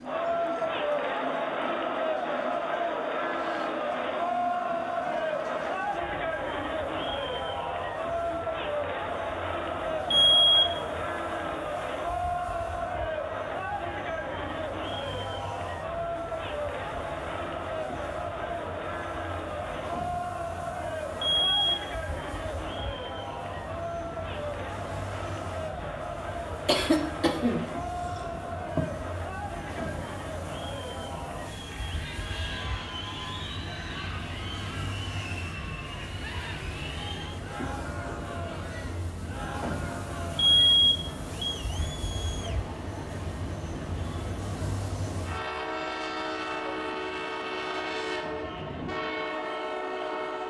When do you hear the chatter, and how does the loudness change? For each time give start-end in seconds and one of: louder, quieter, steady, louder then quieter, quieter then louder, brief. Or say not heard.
0.0-50.4 quieter.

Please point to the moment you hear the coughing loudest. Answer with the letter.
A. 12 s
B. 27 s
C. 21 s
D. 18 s
B.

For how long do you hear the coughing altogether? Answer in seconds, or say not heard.
2 s.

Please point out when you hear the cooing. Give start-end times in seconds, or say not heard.
not heard.